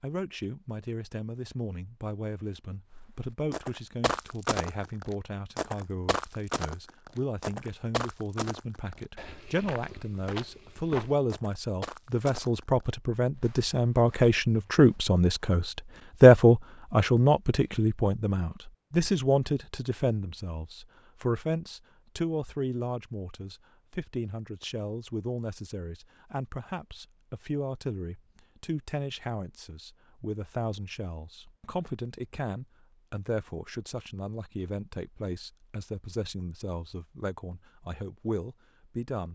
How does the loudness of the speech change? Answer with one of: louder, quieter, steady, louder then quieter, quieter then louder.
louder then quieter.